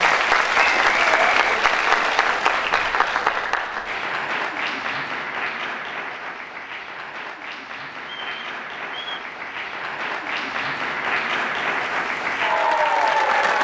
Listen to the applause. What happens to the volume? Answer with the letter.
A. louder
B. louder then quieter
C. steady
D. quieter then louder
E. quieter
D.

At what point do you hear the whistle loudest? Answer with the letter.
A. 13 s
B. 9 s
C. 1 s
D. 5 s
C.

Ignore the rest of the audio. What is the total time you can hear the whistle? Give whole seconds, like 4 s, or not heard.
2 s.